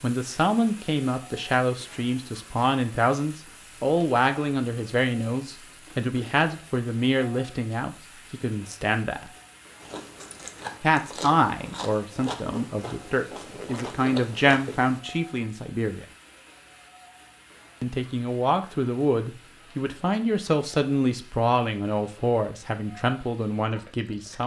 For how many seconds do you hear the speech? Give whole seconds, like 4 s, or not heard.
21 s.